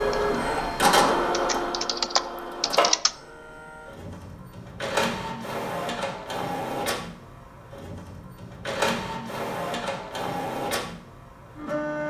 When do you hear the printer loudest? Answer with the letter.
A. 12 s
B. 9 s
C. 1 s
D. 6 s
C.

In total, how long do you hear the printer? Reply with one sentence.
The printer can be heard for 12 seconds in total.